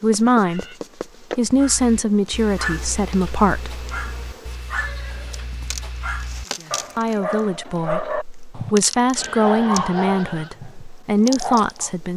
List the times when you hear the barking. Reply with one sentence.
The barking can be heard from 1.4 to 11.9 s.